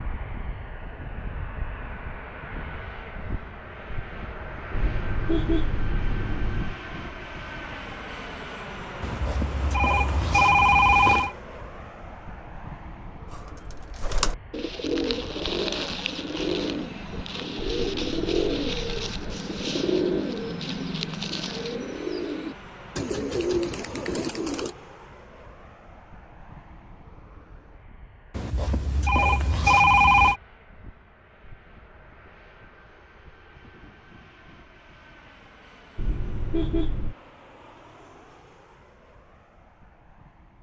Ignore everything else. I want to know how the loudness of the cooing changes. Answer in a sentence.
The volume of the cooing stays about the same.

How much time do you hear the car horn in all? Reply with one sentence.
The car horn can be heard for 5 seconds in total.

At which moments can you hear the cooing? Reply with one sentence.
The cooing can be heard from 13.3 to 24.8 s.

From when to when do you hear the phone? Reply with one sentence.
The phone can be heard from 9.0 to 11.3 s and from 28.4 to 30.4 s.